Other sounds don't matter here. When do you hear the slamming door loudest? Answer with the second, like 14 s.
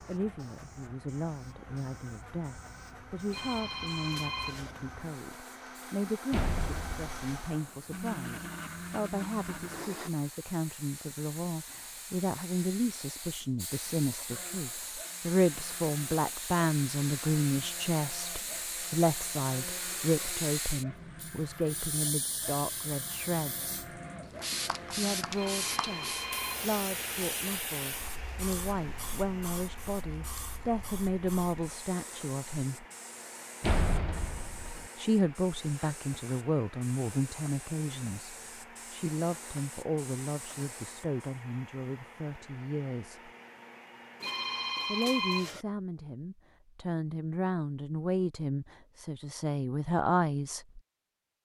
34 s.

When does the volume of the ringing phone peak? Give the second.
45 s.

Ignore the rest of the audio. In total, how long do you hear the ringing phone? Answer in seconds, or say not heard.
4 s.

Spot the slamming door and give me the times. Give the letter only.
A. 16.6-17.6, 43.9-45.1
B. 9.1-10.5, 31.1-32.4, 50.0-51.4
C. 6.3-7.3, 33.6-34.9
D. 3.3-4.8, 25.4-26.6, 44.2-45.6
C.